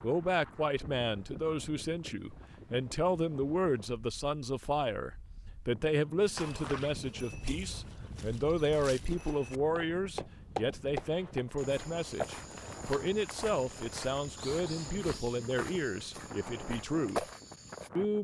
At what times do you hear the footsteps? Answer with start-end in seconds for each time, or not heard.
6.3-17.9.